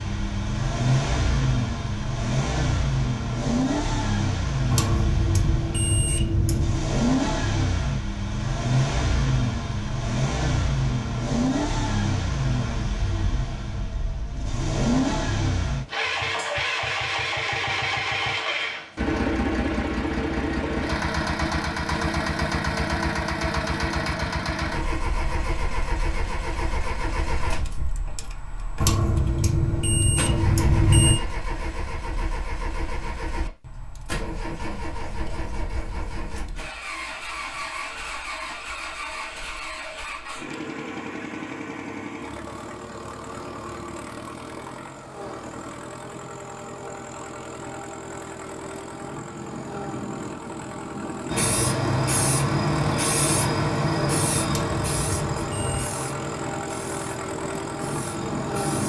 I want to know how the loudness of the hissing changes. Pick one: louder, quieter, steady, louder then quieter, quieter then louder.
quieter.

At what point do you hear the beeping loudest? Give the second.
31 s.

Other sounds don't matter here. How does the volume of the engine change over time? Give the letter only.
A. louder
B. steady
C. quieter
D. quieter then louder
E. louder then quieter
C.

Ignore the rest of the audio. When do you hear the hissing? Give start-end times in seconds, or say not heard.
51.3-58.8.